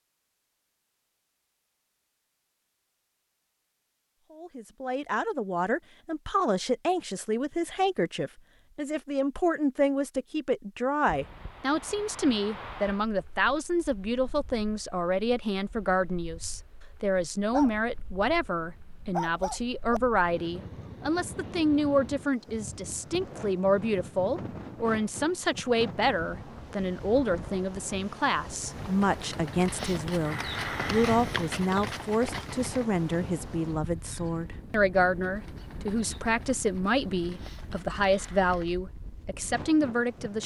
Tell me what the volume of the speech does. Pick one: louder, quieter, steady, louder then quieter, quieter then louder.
steady.